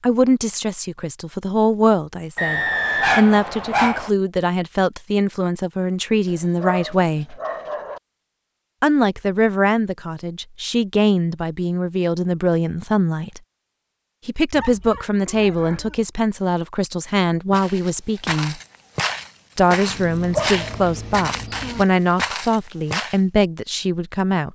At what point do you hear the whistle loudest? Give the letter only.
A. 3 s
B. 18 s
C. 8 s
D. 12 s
A.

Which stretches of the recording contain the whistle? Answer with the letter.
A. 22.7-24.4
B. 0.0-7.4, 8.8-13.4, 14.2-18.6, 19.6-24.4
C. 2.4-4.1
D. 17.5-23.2
C.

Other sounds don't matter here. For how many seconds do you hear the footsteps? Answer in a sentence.
The footsteps can be heard for 6 seconds in total.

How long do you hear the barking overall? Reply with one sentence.
You can hear the barking for 6 seconds altogether.